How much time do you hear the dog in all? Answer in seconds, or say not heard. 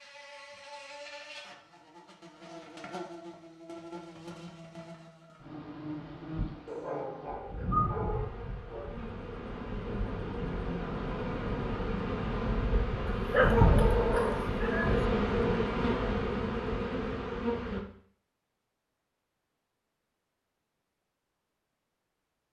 4 s.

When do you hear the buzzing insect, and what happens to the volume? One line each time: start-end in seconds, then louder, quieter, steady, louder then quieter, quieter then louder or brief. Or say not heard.
0.0-17.8 louder.